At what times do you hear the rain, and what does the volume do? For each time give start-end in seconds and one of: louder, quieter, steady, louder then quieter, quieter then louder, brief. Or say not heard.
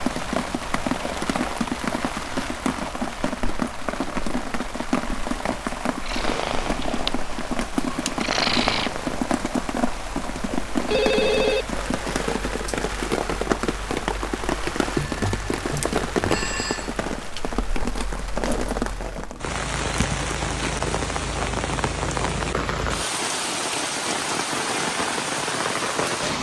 0.0-26.3 steady.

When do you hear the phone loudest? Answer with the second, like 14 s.
11 s.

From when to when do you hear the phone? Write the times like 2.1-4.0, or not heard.
10.5-11.7, 14.9-16.9.